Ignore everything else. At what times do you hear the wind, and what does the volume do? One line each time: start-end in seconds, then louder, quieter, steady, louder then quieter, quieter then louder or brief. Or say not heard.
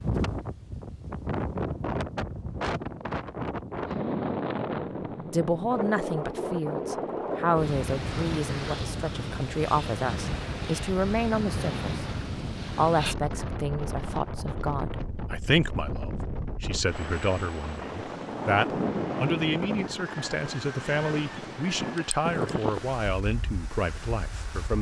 0.0-24.7 steady.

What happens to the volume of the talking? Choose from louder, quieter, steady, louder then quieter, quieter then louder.
steady.